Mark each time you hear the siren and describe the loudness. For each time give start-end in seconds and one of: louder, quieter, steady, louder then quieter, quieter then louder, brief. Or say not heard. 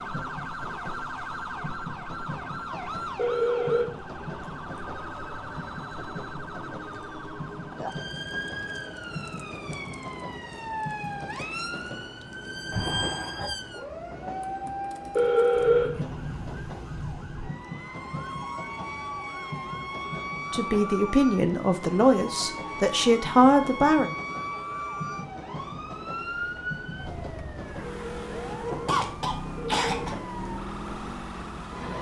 0.0-31.9 steady.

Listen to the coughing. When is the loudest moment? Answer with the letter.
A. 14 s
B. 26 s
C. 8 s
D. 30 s
D.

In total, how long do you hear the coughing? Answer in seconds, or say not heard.
2 s.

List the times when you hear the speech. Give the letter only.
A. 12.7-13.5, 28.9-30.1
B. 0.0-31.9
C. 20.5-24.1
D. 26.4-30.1
C.